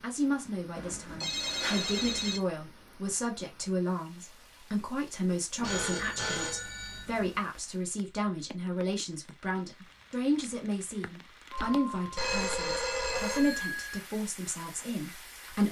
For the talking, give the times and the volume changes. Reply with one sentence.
You can hear the talking from 0.0 to 15.6 s, at a steady volume.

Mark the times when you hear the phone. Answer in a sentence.
You can hear the phone from 0.8 to 2.4 s, from 5.5 to 7.4 s and from 11.5 to 14.0 s.